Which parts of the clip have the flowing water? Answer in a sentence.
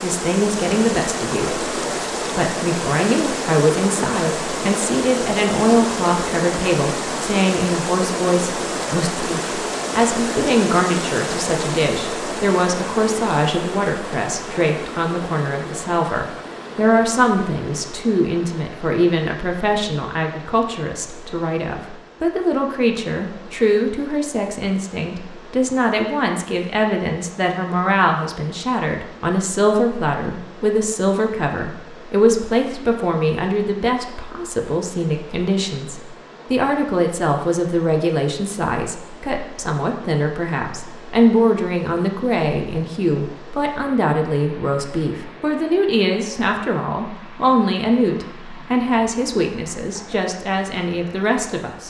The flowing water can be heard from 0.0 to 51.8 s.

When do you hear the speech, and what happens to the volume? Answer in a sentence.
The speech can be heard briefly from 0.0 to 1.6 s; and from 2.3 to 51.8 s, at a steady volume.